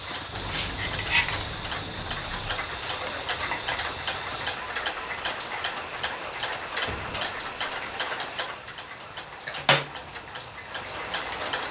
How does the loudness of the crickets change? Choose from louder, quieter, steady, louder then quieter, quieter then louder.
quieter.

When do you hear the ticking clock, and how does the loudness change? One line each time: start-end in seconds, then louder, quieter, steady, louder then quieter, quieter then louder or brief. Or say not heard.
0.0-11.6 steady.